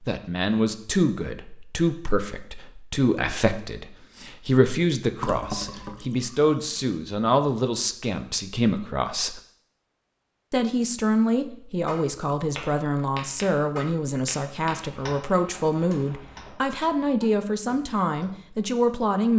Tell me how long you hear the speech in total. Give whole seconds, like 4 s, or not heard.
18 s.